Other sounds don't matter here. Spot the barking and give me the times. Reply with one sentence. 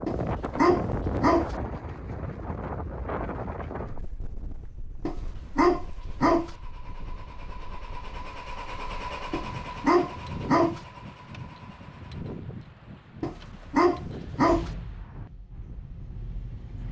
The barking can be heard from 0.1 to 1.6 s, from 5.0 to 6.5 s, from 9.3 to 10.8 s and from 13.2 to 14.7 s.